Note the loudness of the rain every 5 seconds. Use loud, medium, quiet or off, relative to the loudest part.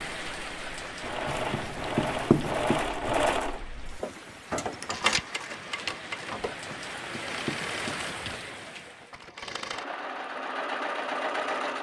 loud, loud, off.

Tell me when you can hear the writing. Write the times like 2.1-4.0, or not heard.
1.2-2.9, 6.5-8.6.